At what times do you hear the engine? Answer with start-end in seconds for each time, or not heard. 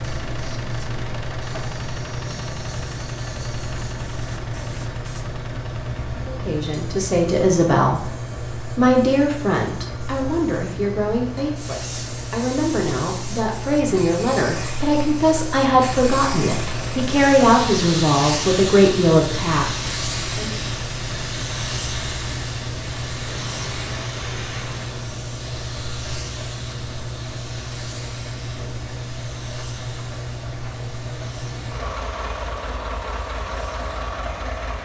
0.0-34.7.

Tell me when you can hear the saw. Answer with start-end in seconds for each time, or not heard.
not heard.